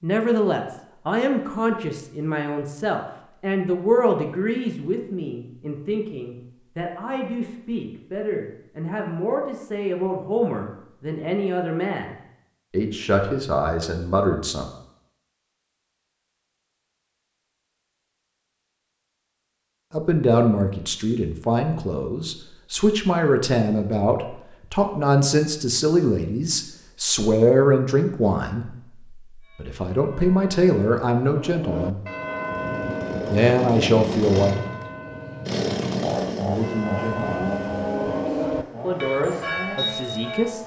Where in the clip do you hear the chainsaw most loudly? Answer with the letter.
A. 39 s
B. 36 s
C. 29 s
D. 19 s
B.